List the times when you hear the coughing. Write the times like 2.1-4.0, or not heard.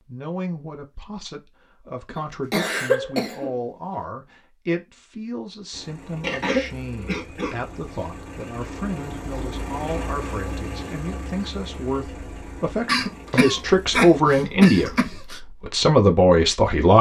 2.1-4.0, 6.2-7.5, 12.8-15.4.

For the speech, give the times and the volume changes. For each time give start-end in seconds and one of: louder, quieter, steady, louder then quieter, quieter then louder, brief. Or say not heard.
0.1-16.9 louder.